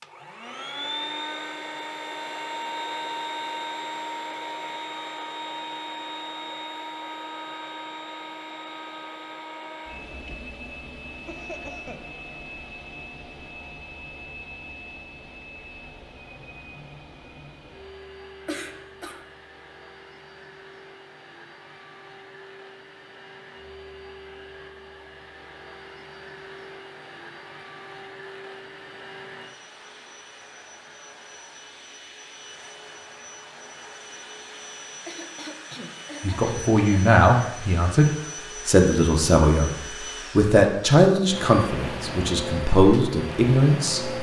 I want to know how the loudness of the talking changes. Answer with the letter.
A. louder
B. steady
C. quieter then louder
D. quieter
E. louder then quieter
B.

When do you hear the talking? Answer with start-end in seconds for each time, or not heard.
36.2-44.1.